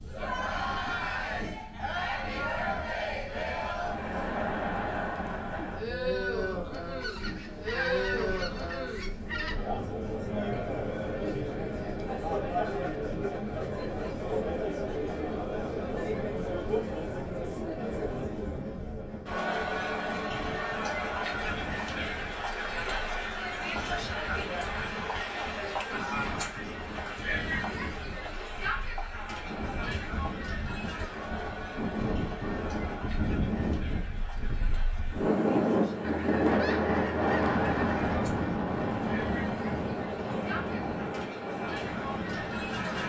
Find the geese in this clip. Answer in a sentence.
You can hear the geese from 7.0 to 9.9 s and from 36.0 to 38.3 s.